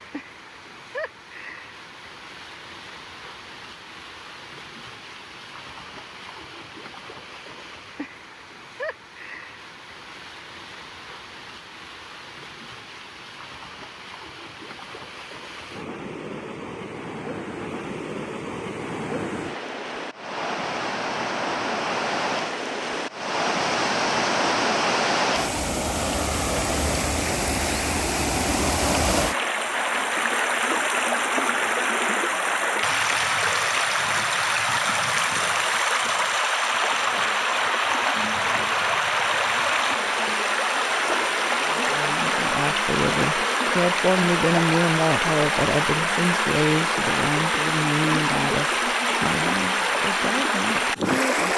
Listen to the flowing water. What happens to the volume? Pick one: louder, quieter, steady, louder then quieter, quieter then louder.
louder.